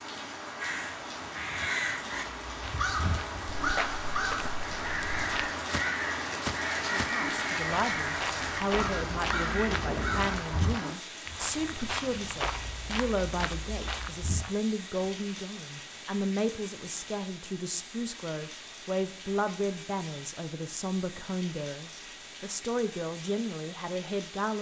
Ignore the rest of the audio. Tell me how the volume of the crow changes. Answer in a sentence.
The volume of the crow stays about the same.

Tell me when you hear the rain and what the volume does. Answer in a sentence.
The rain can be heard from 0.0 to 24.5 s, getting quieter.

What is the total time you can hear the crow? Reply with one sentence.
You can hear the crow for 10 seconds altogether.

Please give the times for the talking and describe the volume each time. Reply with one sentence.
You can hear the talking from 6.9 to 24.5 s, at a steady volume.